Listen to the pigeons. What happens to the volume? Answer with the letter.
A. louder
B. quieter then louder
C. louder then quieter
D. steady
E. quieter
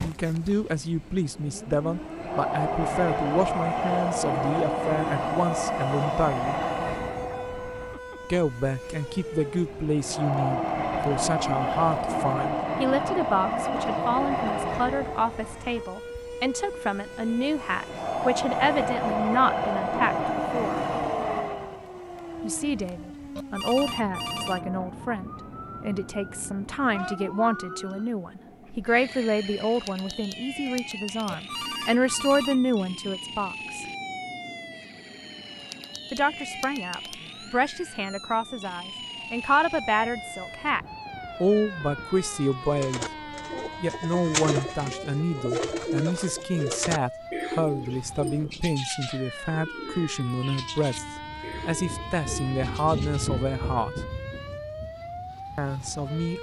E.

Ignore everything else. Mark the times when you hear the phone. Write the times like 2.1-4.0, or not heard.
23.4-24.6, 31.2-32.6.